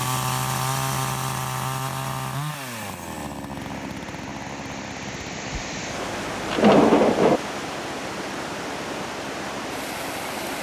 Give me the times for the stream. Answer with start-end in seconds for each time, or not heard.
3.5-10.5.